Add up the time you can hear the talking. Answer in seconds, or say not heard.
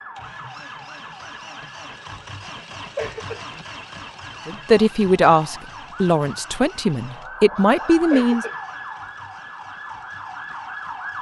4 s.